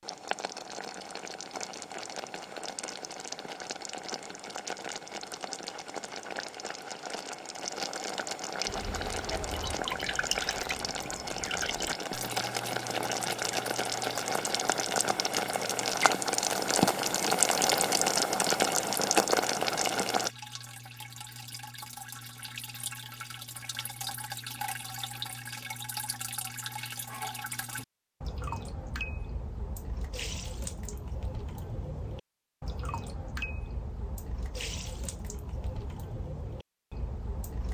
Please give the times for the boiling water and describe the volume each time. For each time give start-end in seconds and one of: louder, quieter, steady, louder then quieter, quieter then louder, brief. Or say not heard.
0.0-20.3 louder.